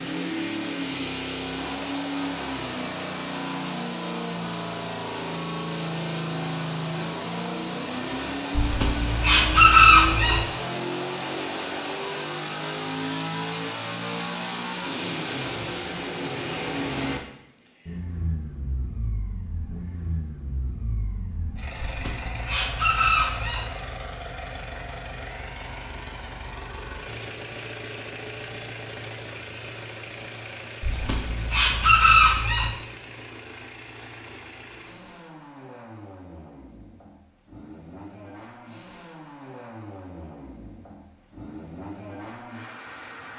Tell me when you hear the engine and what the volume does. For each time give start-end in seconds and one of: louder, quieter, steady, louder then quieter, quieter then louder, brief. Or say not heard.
0.0-43.3 quieter.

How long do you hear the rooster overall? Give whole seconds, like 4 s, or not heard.
6 s.